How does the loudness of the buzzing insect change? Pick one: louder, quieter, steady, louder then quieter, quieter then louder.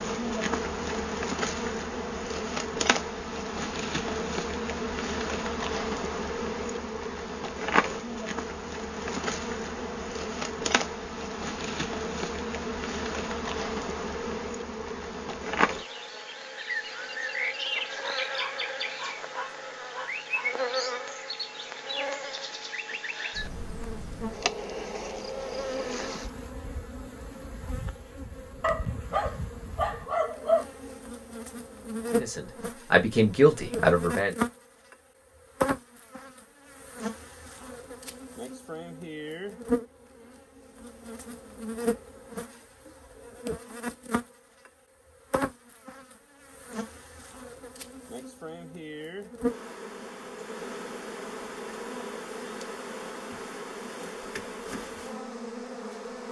quieter.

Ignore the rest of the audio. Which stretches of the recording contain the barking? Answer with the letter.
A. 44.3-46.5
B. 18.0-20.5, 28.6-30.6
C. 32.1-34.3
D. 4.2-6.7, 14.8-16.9
B.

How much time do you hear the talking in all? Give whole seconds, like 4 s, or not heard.
2 s.